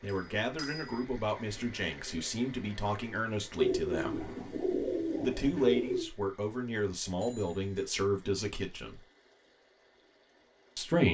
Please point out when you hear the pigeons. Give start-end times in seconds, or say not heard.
3.5-6.1.